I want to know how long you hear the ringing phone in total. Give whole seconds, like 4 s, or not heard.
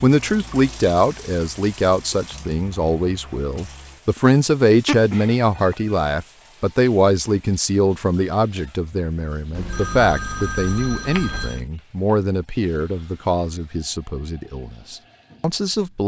3 s.